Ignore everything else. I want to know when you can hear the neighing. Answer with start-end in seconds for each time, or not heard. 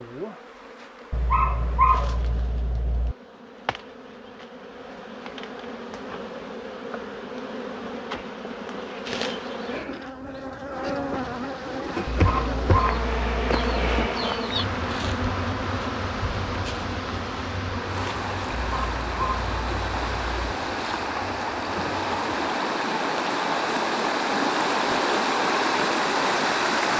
not heard.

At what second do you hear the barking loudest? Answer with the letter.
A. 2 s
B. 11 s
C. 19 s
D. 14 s
A.